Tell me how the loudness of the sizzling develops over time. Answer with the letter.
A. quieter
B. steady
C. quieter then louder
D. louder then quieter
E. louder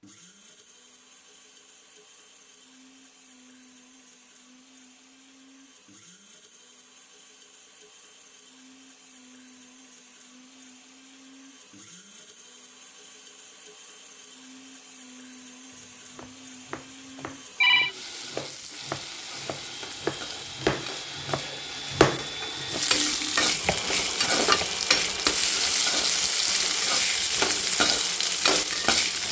E.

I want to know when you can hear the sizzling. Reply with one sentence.
The sizzling can be heard from 17.9 to 29.2 s.